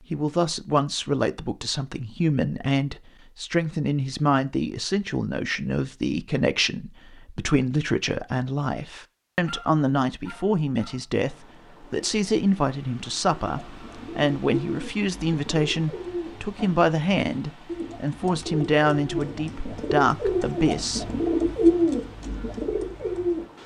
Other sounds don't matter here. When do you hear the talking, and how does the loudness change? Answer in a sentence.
The talking can be heard from 0.1 to 21.2 s, at a steady volume.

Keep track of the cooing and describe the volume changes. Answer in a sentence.
The volume of the cooing goes up.